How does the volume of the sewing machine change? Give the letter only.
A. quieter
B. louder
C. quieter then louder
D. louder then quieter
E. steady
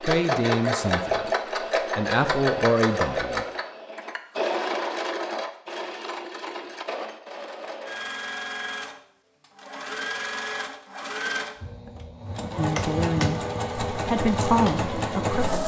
C.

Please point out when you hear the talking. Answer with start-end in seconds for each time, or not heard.
0.0-3.5, 12.6-15.6.